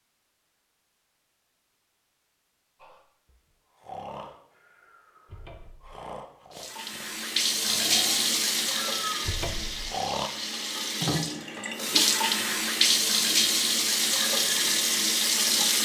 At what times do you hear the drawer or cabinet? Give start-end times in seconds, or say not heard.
5.2-6.0, 9.2-9.9.